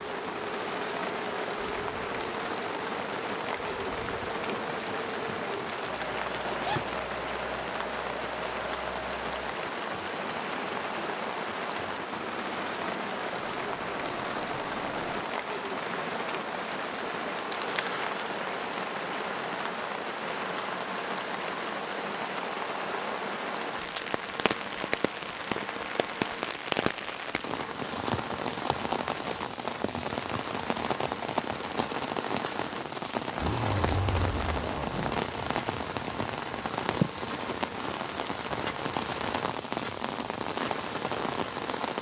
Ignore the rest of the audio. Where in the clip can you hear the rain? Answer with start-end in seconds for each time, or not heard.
0.0-41.9.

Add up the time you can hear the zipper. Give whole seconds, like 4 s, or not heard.
5 s.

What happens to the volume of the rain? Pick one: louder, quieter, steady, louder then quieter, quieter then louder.
steady.